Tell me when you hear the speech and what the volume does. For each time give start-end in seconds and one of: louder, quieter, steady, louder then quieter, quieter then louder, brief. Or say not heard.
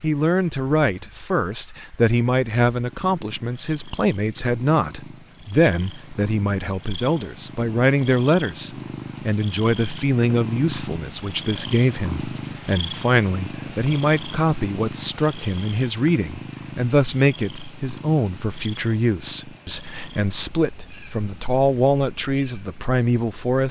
0.0-23.6 steady.